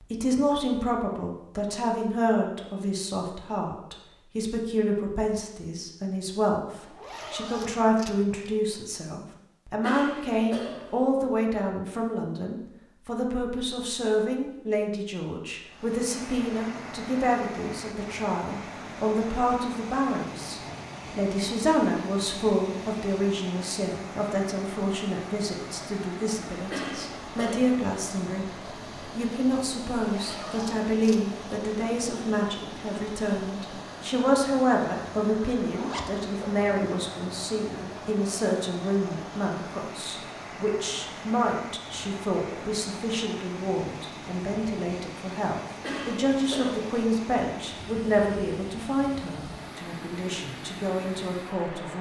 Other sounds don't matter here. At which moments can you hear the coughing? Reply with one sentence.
You can hear the coughing from 9.8 to 11.1 s, from 26.7 to 27.8 s and from 45.8 to 46.8 s.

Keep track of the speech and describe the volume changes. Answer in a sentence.
The loudness of the speech stays about the same.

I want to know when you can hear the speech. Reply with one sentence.
The speech can be heard from 0.0 to 51.9 s.